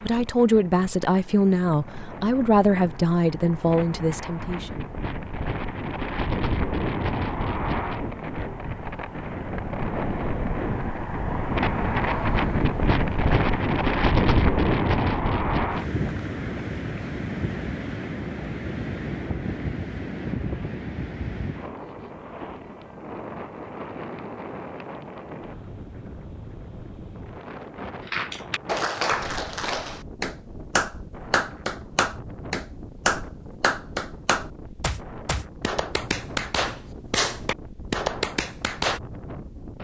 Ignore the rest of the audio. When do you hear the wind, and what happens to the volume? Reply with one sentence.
The wind can be heard from 0.0 to 39.7 s, getting louder then quieter.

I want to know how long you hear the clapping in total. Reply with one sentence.
The clapping can be heard for 11 seconds in total.